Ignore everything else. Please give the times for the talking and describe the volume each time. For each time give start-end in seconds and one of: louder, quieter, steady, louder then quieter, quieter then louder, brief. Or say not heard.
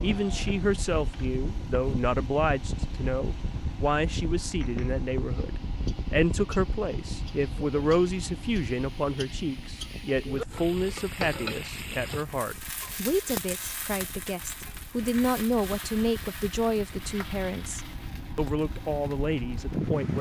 0.0-20.1 steady.